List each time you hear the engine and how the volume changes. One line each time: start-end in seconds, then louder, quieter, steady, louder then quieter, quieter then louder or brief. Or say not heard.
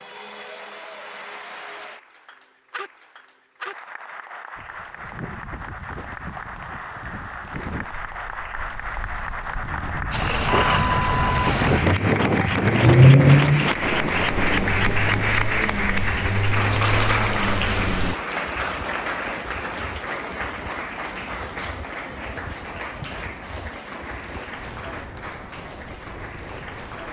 10.1-18.1 louder then quieter.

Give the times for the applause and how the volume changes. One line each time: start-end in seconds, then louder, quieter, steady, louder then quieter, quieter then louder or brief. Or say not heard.
0.0-27.0 louder then quieter.